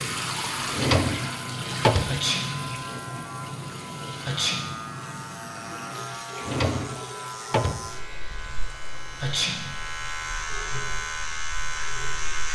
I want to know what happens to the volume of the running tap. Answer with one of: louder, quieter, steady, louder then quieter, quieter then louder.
quieter.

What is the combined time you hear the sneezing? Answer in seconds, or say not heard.
2 s.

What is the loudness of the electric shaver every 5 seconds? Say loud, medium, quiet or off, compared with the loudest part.
medium, medium, loud.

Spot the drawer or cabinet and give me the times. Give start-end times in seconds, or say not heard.
0.7-2.2, 6.3-7.9.